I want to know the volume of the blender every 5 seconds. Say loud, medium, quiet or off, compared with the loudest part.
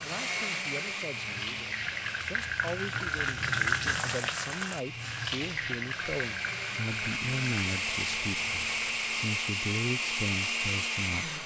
medium, loud, loud.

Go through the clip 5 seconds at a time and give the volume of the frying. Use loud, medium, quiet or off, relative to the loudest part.
loud, medium, off.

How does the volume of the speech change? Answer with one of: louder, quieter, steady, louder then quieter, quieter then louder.
louder.